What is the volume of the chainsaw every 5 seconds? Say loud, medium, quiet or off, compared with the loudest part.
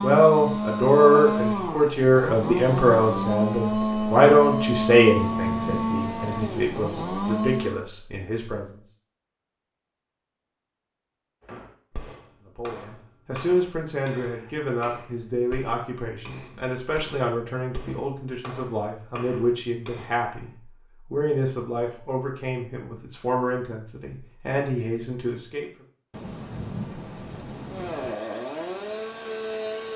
loud, loud, off, off, off, medium.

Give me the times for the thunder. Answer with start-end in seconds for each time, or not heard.
5.2-7.0, 26.1-28.1.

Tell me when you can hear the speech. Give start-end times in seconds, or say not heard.
0.0-8.8, 12.4-20.5, 21.1-25.7.